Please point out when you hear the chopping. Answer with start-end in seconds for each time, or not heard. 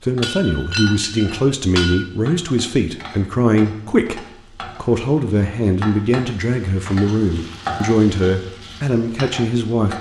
not heard.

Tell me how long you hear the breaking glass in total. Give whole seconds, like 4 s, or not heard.
2 s.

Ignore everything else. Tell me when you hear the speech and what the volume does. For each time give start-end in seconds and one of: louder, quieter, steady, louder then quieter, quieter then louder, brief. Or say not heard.
0.0-9.9 steady.